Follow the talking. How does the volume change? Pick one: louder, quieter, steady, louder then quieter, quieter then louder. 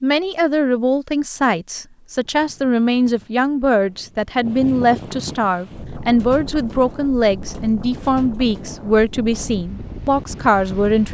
steady.